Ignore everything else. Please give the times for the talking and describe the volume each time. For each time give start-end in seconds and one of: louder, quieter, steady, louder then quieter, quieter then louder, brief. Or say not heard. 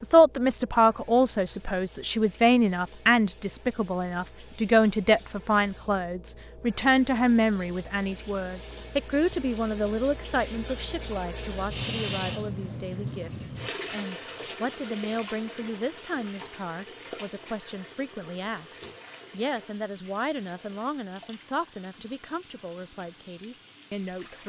0.0-24.4 quieter.